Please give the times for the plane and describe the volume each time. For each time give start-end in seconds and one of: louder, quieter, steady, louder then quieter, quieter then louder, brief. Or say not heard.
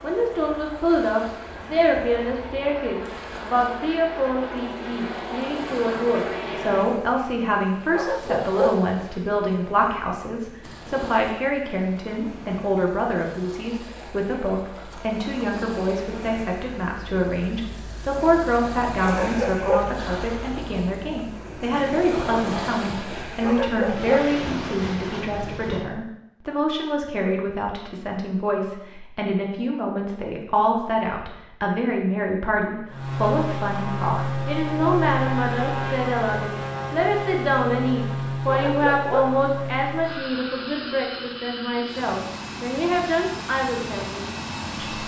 0.0-6.9 louder
32.9-45.0 quieter.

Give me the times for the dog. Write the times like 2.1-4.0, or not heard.
7.9-8.8, 19.0-19.9, 23.4-24.3, 38.5-39.4.